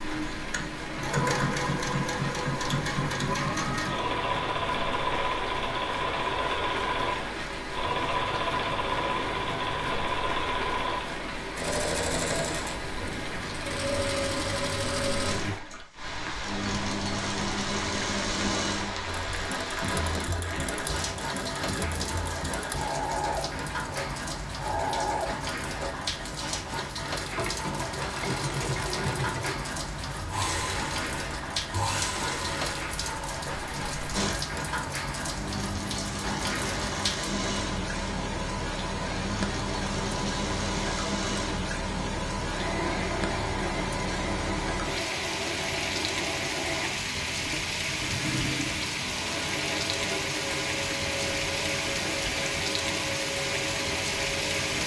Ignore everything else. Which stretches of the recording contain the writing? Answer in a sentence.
The writing can't be heard in this clip.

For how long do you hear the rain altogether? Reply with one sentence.
You can hear the rain for 55 seconds altogether.